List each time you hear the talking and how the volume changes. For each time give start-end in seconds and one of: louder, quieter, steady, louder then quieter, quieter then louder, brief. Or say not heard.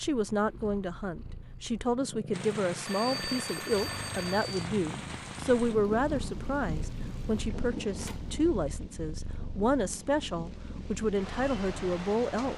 0.0-12.5 steady.